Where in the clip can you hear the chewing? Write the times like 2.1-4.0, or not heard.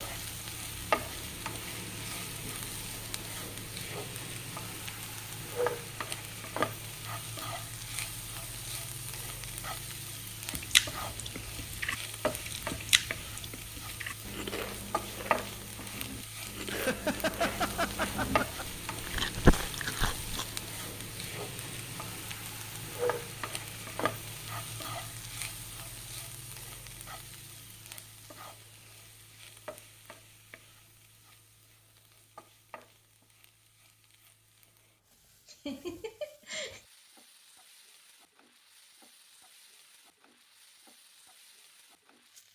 10.5-20.6.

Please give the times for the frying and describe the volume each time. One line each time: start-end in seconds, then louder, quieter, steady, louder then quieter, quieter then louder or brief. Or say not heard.
0.0-42.5 quieter.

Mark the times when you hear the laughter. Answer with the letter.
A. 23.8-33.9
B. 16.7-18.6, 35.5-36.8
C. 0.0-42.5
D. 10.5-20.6
B.